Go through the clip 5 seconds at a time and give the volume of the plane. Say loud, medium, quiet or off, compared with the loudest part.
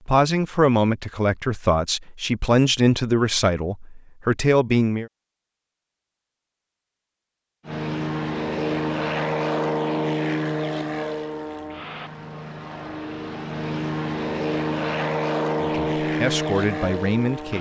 off, loud, loud, loud.